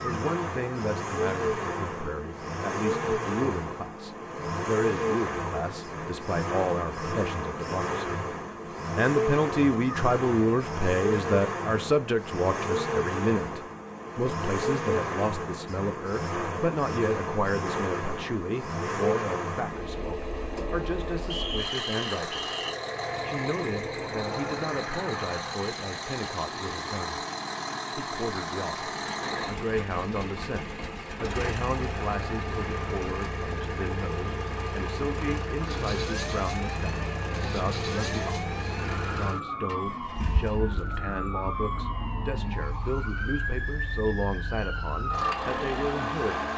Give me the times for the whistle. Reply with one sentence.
The whistle can be heard from 21.3 to 22.8 s.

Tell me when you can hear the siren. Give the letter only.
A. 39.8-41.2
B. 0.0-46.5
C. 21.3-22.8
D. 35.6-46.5
D.